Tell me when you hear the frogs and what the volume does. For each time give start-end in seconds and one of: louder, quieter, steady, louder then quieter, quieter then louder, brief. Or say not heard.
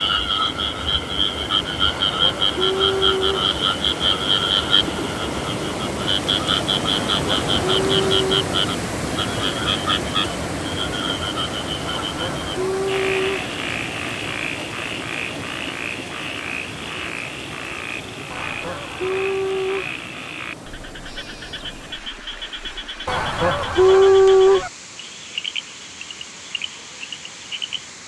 0.0-27.9 quieter.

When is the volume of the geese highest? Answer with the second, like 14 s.
24 s.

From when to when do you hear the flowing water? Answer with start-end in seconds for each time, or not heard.
0.0-28.0.